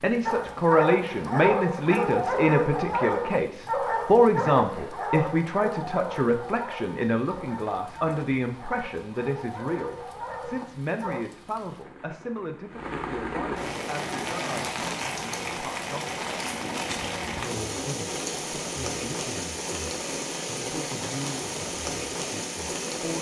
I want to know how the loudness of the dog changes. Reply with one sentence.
The loudness of the dog goes down.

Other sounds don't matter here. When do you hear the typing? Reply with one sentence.
The typing can't be heard in this clip.